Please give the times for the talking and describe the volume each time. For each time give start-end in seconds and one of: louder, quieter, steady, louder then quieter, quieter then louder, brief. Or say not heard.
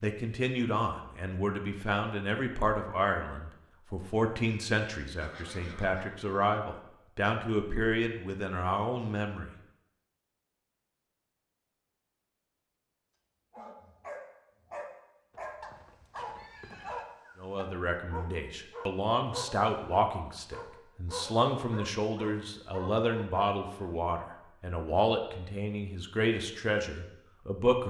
0.0-9.5 steady
17.4-27.8 steady.